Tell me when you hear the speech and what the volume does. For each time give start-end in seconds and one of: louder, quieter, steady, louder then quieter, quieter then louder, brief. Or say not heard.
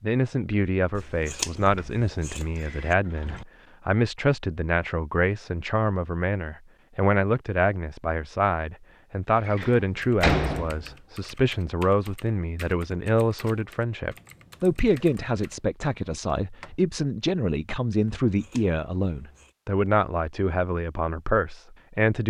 0.0-22.2 steady.